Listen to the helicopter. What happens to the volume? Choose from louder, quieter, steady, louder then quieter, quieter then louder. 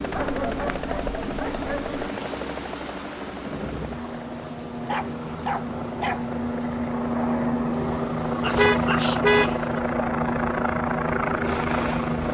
louder.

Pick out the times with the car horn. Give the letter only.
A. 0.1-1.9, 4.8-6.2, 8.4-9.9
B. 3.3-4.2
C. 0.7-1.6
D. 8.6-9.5
D.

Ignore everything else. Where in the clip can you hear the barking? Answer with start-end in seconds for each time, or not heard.
0.1-1.9, 4.8-6.2, 8.4-9.9.